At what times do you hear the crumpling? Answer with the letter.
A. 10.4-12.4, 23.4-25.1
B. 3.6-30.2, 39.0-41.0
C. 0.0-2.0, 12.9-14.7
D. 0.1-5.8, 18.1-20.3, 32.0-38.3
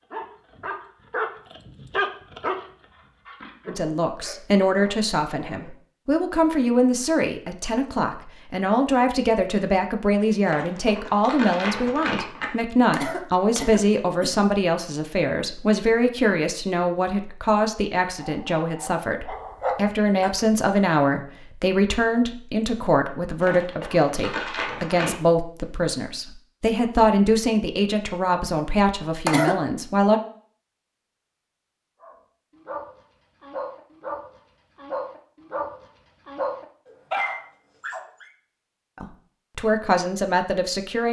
A.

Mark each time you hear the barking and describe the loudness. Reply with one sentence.
You can hear the barking from 0.1 to 5.8 s, getting quieter; briefly from 18.1 to 20.3 s; and from 32.0 to 38.3 s, getting louder.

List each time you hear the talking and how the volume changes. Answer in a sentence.
The talking can be heard from 3.6 to 30.2 s, at a steady volume; and briefly from 39.0 to 41.0 s.